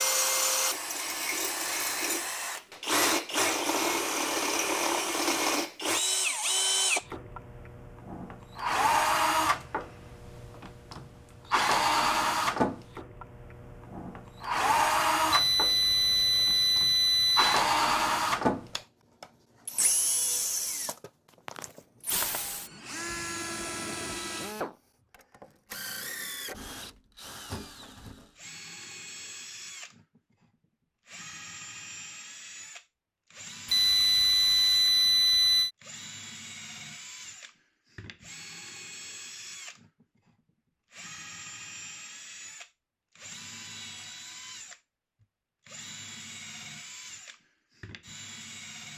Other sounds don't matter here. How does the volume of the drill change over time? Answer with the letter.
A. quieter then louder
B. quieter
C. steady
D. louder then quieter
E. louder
B.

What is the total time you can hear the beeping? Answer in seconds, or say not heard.
4 s.